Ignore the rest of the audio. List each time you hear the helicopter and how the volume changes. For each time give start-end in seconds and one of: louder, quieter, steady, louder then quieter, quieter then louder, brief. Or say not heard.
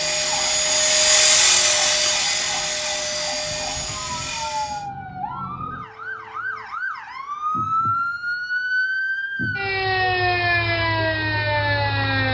0.0-4.8 quieter.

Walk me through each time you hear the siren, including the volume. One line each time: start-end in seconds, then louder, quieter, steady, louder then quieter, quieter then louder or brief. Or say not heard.
0.0-12.2 louder.